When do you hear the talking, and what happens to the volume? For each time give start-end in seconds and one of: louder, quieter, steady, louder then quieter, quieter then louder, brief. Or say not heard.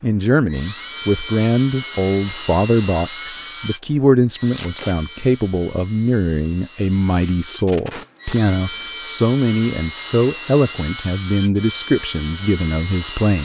0.0-13.4 steady.